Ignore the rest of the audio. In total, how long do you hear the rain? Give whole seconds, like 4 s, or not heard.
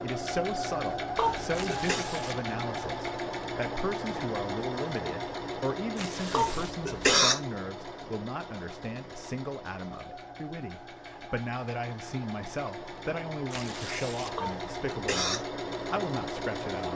not heard.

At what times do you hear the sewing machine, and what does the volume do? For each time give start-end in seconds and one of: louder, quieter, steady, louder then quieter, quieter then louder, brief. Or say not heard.
0.0-16.9 quieter then louder.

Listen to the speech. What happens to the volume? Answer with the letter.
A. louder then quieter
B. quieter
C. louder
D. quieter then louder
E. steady
E.